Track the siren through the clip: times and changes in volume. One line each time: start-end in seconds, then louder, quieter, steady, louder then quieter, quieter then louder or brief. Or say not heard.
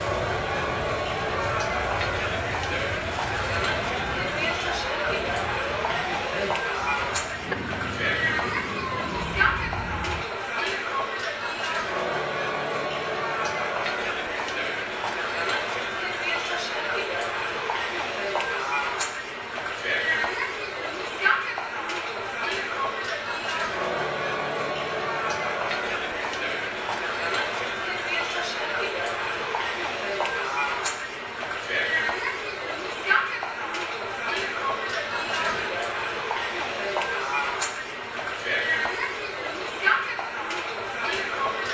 0.0-10.2 steady.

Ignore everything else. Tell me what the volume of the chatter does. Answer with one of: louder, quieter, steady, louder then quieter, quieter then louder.
steady.